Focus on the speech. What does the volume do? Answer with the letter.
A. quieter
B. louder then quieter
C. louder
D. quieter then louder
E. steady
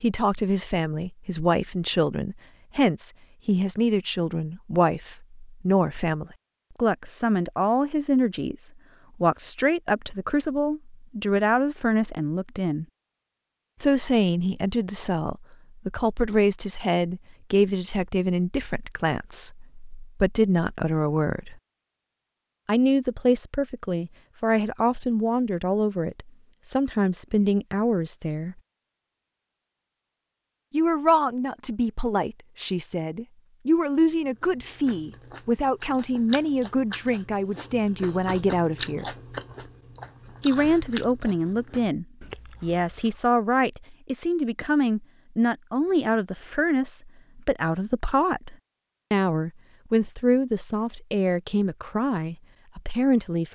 E.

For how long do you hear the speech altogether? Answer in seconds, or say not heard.
48 s.